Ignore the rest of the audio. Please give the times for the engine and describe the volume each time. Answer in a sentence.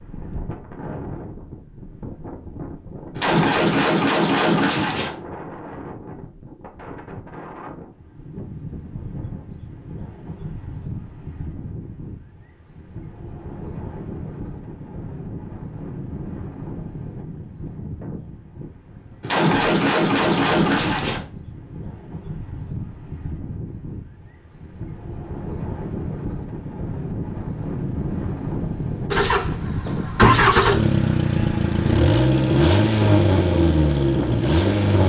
You can hear the engine from 29.1 to 35.0 s, at a steady volume.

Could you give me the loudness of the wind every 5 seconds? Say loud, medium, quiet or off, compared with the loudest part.
medium, medium, medium, medium, medium, loud, loud.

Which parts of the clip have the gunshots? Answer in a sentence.
You can hear the gunshots from 3.1 to 5.1 s and from 19.2 to 21.2 s.